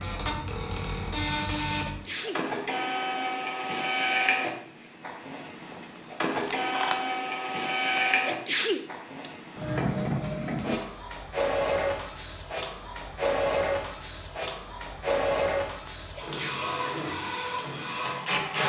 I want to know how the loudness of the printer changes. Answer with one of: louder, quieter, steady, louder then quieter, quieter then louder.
steady.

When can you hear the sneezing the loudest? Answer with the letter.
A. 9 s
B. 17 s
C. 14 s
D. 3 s
A.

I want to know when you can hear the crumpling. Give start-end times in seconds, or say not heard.
6.3-7.2.